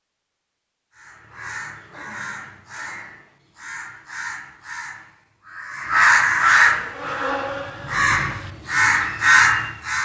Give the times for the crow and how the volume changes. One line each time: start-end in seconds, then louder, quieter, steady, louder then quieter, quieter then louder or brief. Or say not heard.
0.9-10.0 louder.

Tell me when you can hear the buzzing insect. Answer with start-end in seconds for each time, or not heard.
6.7-8.6.